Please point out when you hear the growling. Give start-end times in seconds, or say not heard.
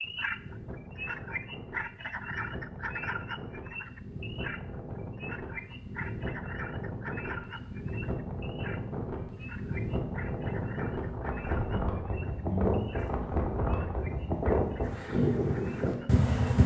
not heard.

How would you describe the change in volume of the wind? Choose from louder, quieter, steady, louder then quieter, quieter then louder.
louder.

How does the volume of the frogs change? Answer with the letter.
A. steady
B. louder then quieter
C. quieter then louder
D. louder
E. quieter
E.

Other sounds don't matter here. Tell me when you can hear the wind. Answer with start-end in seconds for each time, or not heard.
0.0-16.6.